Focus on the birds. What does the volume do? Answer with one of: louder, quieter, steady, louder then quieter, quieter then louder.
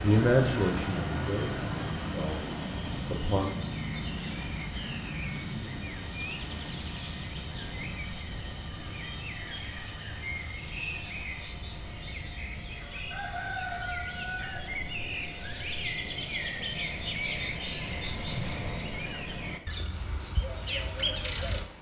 louder.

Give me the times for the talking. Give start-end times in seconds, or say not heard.
0.0-3.5.